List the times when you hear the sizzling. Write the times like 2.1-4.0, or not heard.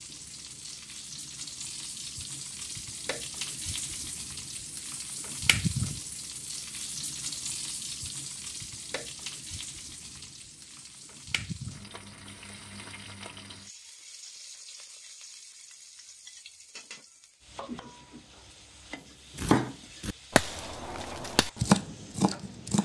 0.0-22.8.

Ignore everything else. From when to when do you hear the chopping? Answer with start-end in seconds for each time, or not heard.
19.4-22.8.